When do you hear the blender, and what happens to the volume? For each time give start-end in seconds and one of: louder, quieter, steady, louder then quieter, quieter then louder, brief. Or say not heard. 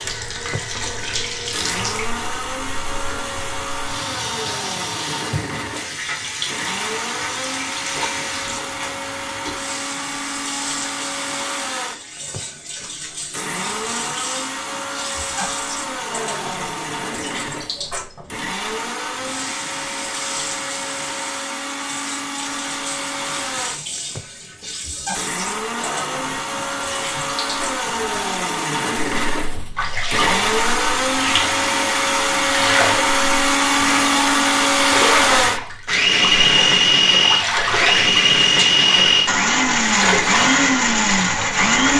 0.0-41.9 louder.